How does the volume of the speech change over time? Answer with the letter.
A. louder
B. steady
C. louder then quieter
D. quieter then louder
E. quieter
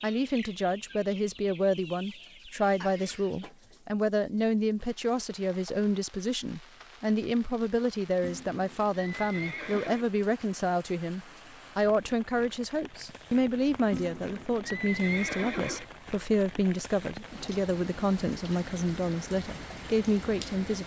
B.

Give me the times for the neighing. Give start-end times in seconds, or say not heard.
2.8-3.4, 8.2-10.1, 13.9-15.8.